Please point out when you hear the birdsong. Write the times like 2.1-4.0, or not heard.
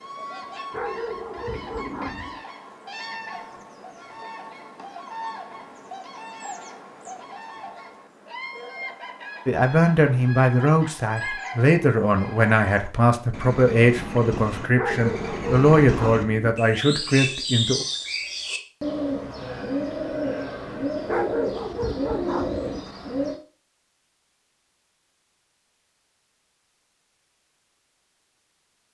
0.0-23.4.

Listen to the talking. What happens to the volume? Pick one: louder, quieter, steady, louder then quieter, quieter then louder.
steady.